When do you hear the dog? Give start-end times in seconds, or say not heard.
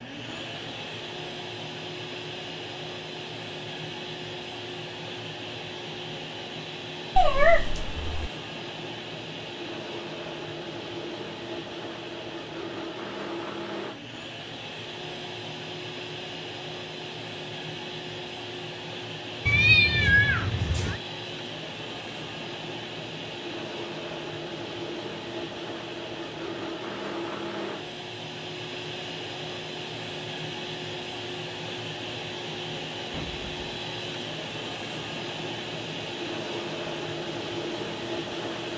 not heard.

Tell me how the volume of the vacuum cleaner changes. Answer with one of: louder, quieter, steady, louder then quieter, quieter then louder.
steady.